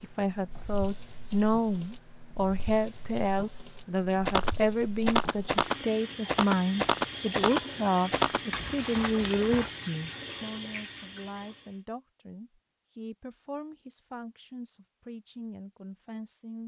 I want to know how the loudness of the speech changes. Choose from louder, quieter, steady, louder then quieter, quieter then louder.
quieter.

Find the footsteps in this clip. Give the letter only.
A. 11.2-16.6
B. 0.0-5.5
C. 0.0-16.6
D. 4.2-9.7
D.